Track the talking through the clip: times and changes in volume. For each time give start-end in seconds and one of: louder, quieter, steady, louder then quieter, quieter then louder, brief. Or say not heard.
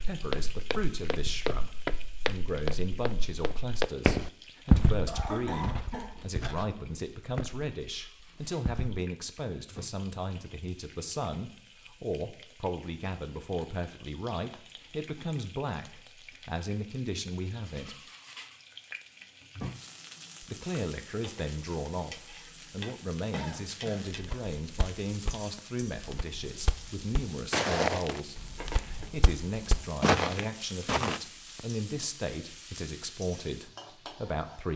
0.0-17.9 steady
20.4-34.7 steady.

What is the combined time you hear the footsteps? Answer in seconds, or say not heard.
16 s.